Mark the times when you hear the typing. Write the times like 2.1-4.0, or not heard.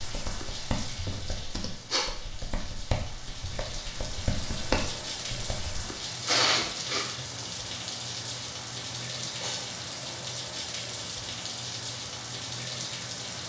0.0-5.8.